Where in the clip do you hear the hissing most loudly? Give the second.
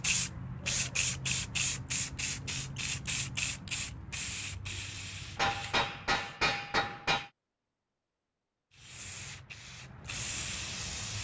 1 s.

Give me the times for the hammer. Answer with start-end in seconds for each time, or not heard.
5.3-7.3.